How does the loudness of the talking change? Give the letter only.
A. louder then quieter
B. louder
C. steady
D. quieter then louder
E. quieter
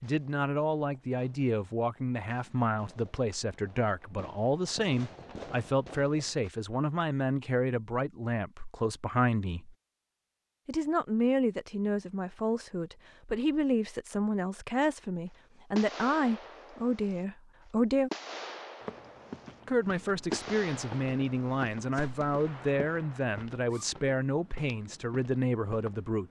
C.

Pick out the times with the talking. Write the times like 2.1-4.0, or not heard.
0.0-9.8, 10.7-18.1, 19.6-26.2.